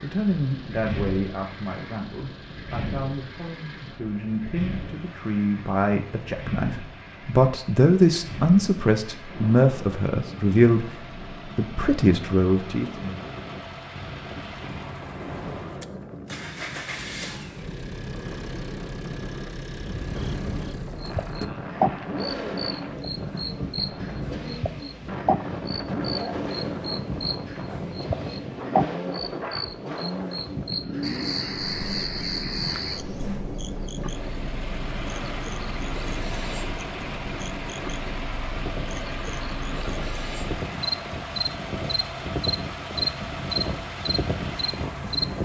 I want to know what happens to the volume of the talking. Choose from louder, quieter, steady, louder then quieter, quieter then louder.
louder.